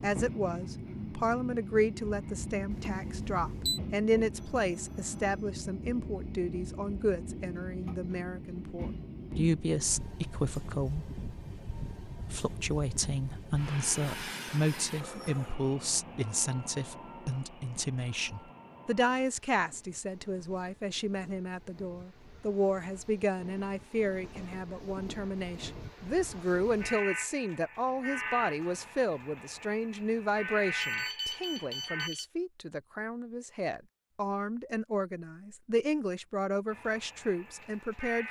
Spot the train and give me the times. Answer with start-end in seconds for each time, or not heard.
0.0-32.1, 36.7-38.2.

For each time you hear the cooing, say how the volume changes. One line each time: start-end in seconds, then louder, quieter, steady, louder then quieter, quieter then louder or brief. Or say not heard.
not heard.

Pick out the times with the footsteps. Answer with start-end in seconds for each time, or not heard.
not heard.